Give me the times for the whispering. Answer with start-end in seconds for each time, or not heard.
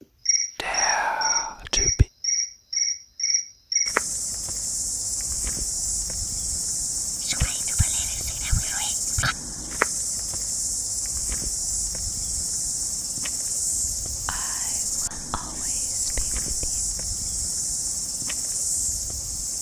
0.6-2.0, 7.2-9.3, 14.2-16.8.